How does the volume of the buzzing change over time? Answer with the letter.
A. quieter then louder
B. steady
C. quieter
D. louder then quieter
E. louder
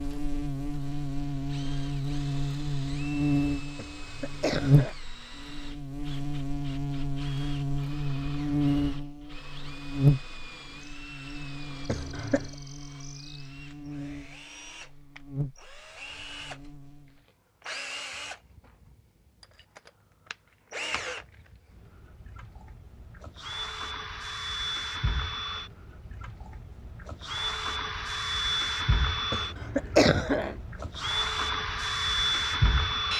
C.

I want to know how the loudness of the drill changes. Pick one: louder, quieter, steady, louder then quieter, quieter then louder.
louder.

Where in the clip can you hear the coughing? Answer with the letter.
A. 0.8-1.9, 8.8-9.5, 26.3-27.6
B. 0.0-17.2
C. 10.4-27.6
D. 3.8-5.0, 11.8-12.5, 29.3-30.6
D.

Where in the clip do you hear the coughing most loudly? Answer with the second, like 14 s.
30 s.